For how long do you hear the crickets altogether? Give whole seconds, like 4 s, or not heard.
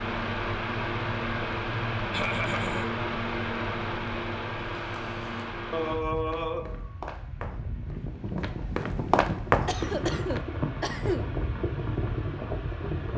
not heard.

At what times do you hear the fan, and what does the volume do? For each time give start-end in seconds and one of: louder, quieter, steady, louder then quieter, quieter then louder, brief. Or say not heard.
0.0-13.1 quieter then louder.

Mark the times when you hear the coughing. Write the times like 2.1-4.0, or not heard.
2.1-2.9, 5.7-6.9, 9.7-11.2.